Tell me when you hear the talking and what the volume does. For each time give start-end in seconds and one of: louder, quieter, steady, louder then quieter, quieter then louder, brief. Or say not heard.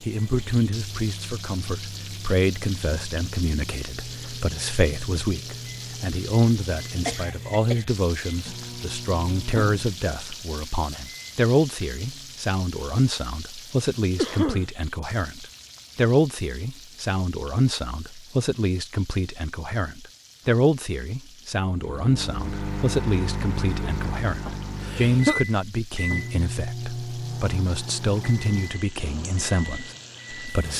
0.0-30.7 steady.